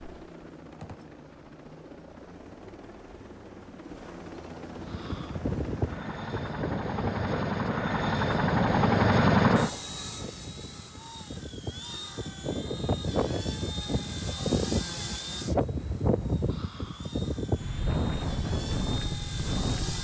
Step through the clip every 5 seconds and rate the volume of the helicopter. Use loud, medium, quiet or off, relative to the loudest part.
quiet, loud, quiet, quiet.